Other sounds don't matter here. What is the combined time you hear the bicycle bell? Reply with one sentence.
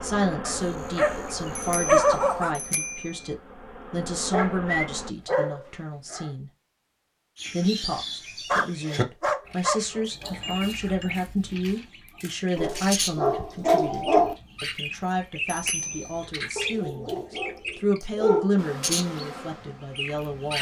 The bicycle bell can be heard for 3 seconds in total.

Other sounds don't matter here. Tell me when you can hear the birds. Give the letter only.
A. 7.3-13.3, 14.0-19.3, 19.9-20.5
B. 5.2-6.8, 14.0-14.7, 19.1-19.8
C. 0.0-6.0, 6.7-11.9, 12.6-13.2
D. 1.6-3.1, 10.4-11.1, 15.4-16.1
A.